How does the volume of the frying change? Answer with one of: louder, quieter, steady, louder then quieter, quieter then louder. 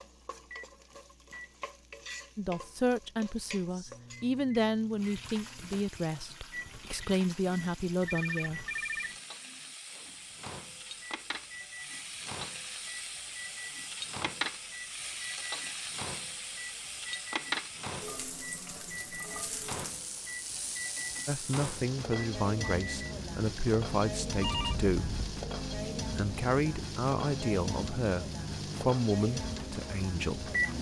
louder.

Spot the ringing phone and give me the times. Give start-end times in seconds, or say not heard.
8.1-9.1, 24.4-25.3.